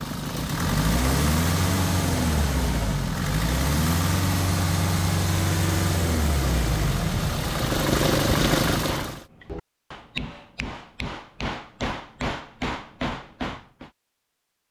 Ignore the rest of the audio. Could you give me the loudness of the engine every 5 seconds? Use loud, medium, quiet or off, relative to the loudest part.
loud, loud, off.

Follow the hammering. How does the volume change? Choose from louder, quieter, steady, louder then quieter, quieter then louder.
louder.